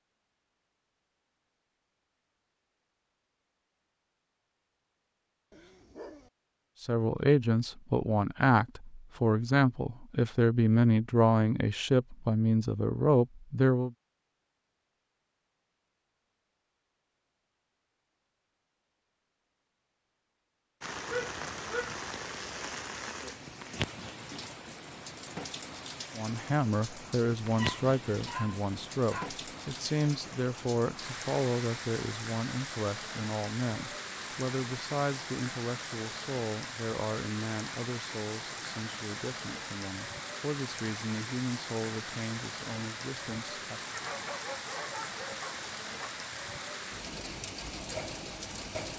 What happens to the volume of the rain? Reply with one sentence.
The loudness of the rain stays about the same.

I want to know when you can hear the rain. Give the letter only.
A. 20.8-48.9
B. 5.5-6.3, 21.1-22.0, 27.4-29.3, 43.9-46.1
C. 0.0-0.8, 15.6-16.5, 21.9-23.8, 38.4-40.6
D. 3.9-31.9
A.